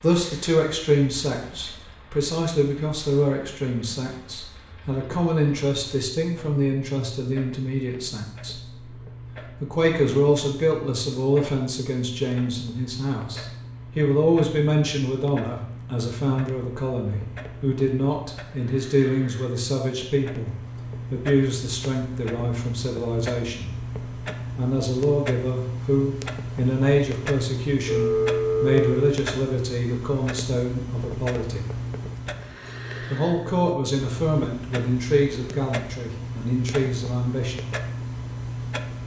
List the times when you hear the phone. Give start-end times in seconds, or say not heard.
27.9-29.1.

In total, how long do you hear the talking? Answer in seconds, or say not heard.
35 s.